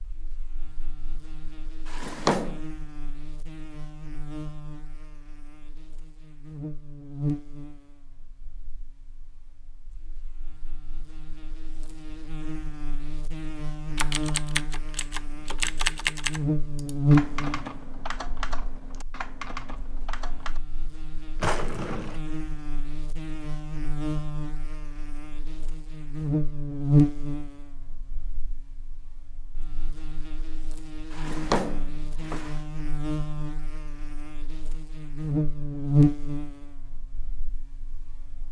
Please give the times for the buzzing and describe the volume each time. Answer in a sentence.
The buzzing can be heard from 0.0 to 38.4 s, getting louder.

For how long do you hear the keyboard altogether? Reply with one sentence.
You can hear the keyboard for 7 seconds altogether.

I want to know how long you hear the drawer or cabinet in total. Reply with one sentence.
The drawer or cabinet can be heard for 3 seconds in total.